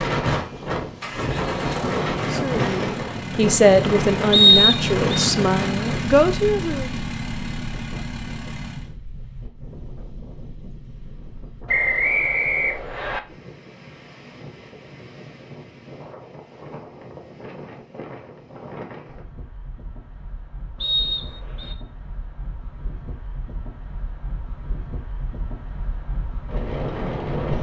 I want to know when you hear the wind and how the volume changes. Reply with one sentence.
You can hear the wind from 0.0 to 27.5 s, getting quieter then louder.